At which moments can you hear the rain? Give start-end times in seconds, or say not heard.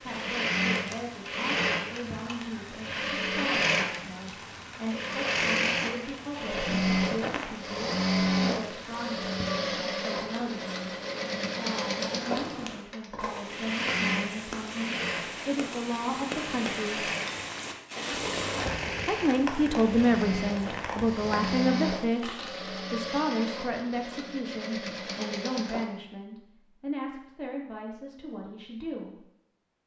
0.0-21.6.